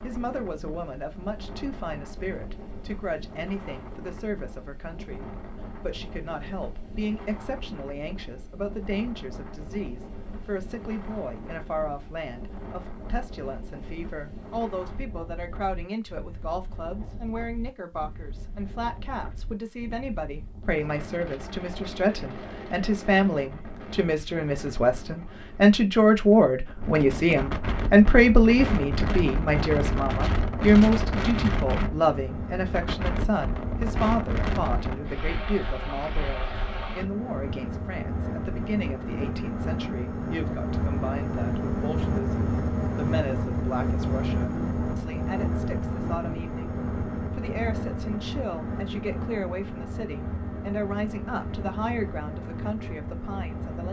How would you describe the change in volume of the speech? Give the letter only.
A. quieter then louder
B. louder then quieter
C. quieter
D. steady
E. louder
B.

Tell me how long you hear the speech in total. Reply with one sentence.
You can hear the speech for 54 seconds altogether.